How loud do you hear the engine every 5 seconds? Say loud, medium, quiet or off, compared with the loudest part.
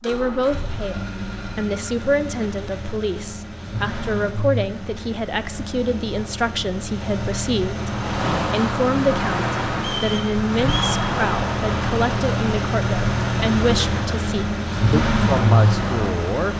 medium, medium, loud, loud.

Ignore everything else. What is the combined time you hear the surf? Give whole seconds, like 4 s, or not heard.
9 s.